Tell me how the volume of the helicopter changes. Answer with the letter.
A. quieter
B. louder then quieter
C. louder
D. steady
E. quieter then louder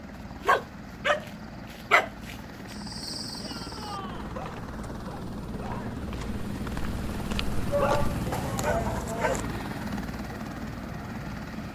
C.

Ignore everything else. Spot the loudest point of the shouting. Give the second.
8 s.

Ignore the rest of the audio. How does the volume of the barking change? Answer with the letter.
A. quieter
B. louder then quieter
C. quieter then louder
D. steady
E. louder
C.